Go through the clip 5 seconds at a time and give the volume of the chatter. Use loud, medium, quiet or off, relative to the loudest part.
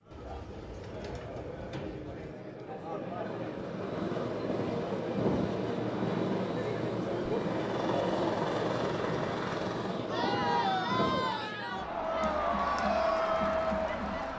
medium, medium, loud.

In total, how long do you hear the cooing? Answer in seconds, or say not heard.
2 s.